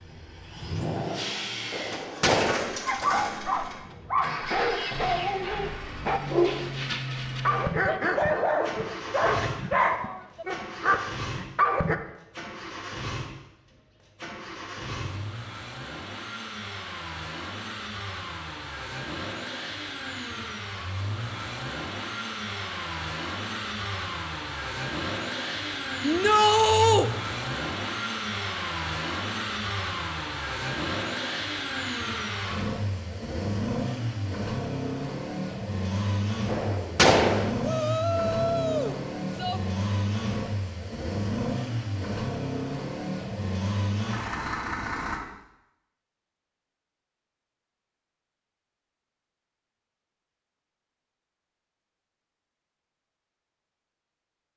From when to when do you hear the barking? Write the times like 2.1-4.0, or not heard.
2.9-11.9.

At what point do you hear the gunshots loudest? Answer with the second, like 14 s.
37 s.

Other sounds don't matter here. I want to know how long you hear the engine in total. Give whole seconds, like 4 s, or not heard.
45 s.